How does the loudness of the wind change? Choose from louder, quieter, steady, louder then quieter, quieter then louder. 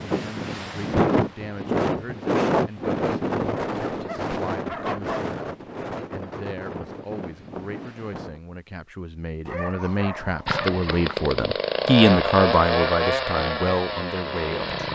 quieter.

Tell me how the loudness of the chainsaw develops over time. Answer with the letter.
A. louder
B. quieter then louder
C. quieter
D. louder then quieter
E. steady
D.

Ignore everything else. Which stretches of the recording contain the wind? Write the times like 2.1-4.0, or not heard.
0.0-8.4.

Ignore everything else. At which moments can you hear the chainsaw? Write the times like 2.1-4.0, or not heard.
10.4-14.9.